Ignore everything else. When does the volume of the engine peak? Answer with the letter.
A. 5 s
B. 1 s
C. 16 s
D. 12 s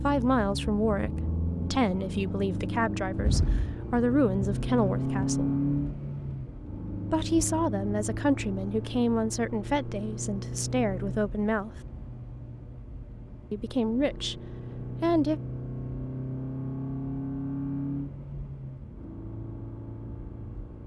A.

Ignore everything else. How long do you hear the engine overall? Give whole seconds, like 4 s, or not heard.
21 s.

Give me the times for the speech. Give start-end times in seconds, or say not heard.
0.0-5.5, 7.1-11.8, 13.5-14.4, 15.0-15.4.